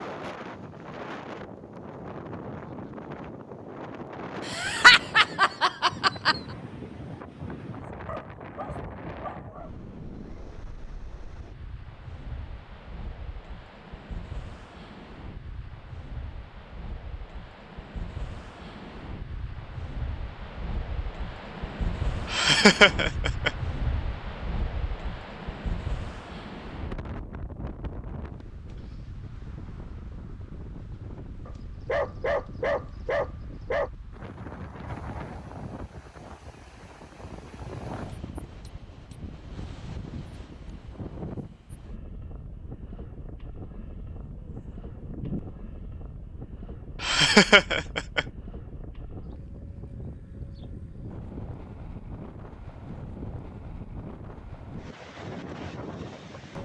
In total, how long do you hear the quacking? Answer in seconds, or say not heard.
not heard.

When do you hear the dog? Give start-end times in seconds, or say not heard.
8.1-9.7, 31.4-33.9, 44.1-45.4.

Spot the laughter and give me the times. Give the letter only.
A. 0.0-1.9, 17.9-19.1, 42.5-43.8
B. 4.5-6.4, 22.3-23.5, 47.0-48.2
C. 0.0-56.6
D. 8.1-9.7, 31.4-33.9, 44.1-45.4
B.